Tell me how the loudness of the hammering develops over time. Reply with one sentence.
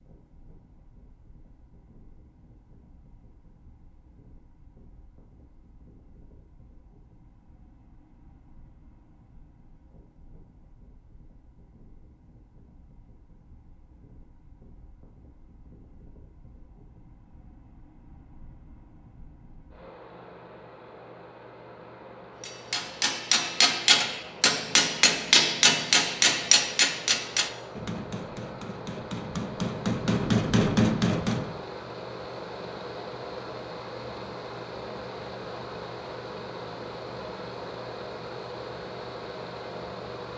The volume of the hammering goes down, then up.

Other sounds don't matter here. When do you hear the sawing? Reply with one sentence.
You can't hear the sawing here.